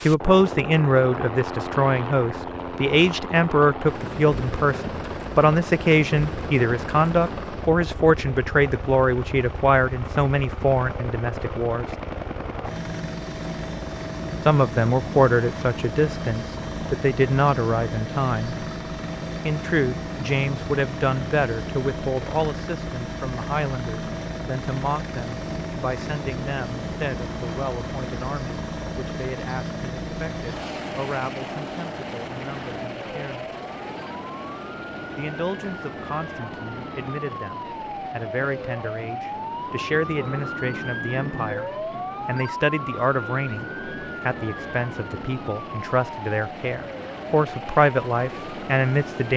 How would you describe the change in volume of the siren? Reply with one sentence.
The loudness of the siren goes up, then down.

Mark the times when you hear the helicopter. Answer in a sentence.
You can hear the helicopter from 0.0 to 49.3 s.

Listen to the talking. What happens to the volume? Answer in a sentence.
The volume of the talking goes down, then up.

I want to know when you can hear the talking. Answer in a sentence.
The talking can be heard from 0.0 to 11.8 s, from 14.4 to 18.6 s, from 19.4 to 33.5 s and from 35.1 to 49.3 s.